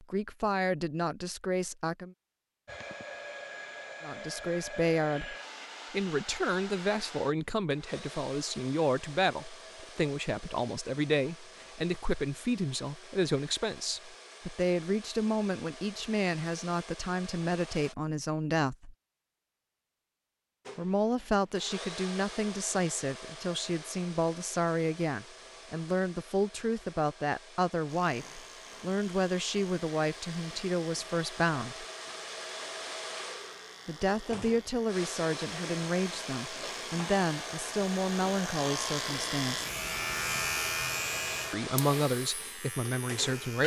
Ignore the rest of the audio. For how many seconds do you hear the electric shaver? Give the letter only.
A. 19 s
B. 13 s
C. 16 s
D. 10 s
C.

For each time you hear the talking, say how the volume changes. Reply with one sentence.
You can hear the talking briefly from 0.0 to 2.1 s; from 4.0 to 18.9 s, at a steady volume; from 20.8 to 31.9 s, at a steady volume; from 33.9 to 39.6 s, at a steady volume; and briefly from 41.5 to 43.6 s.